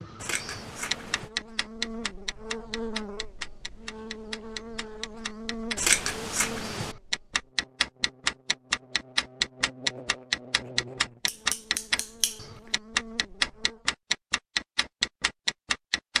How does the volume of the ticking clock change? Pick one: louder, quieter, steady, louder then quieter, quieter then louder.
louder.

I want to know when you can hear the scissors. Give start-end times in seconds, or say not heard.
0.2-1.3, 5.8-7.0, 11.2-12.4.